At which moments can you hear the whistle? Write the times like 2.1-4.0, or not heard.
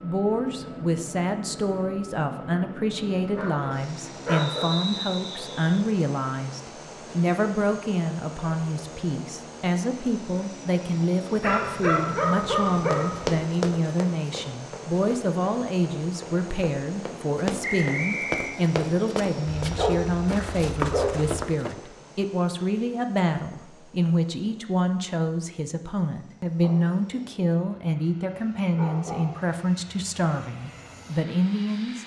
4.3-5.6, 17.6-18.6.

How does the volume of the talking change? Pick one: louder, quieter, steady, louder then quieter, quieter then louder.
steady.